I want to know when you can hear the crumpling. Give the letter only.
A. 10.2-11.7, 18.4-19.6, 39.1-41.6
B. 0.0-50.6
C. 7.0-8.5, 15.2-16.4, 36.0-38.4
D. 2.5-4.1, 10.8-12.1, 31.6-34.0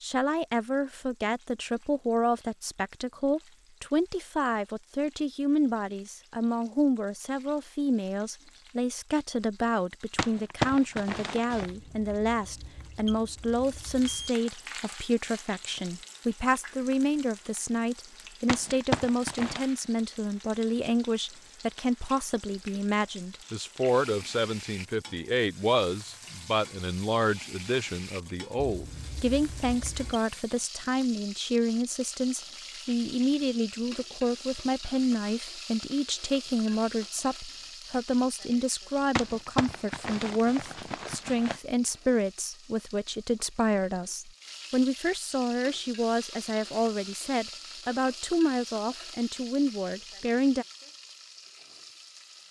A.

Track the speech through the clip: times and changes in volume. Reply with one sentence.
The speech can be heard from 0.0 to 50.6 s, at a steady volume.